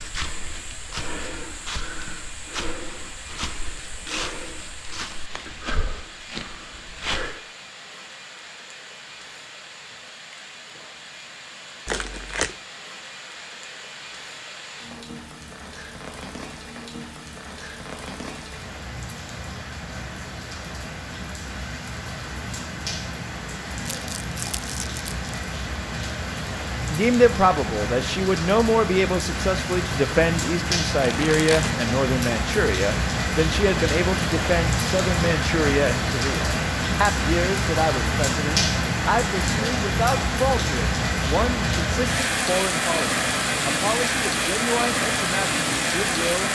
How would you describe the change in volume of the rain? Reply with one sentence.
The loudness of the rain goes up.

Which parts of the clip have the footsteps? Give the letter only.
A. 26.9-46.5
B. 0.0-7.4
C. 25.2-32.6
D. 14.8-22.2
B.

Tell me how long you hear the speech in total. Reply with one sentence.
You can hear the speech for 20 seconds altogether.